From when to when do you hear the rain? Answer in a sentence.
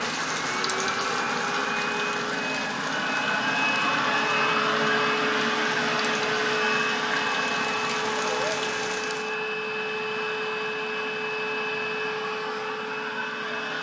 You can hear the rain from 0.0 to 9.3 s.